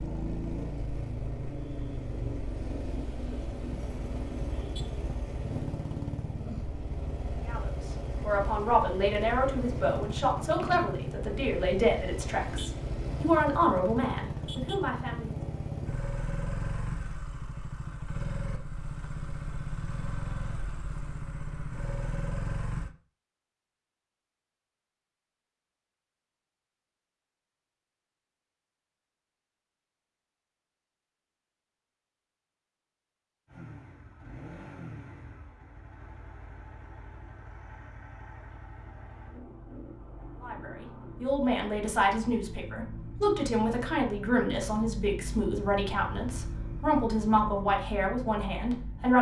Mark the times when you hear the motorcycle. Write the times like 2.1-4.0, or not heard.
0.0-22.9, 33.5-49.1.